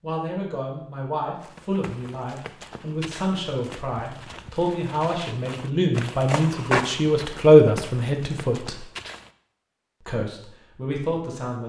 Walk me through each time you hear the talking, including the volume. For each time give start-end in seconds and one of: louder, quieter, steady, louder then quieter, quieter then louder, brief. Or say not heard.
0.0-8.8 louder
10.1-11.6 brief.